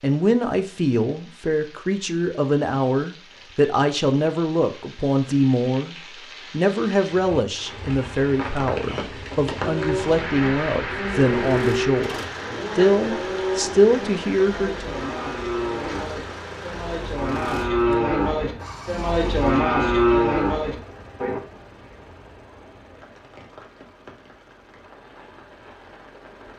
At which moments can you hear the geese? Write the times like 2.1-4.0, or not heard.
not heard.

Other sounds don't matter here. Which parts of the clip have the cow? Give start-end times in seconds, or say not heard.
9.6-21.4.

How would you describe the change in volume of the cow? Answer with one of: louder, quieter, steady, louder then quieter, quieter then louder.
louder.